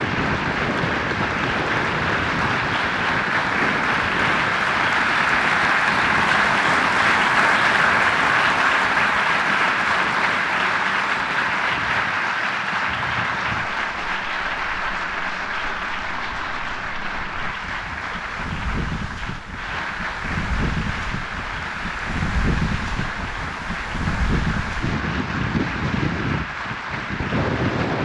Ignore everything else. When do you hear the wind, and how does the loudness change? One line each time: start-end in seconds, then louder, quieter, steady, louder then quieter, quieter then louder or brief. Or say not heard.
0.0-28.0 quieter then louder.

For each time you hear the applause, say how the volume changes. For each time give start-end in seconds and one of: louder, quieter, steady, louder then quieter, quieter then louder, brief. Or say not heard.
0.0-28.0 quieter.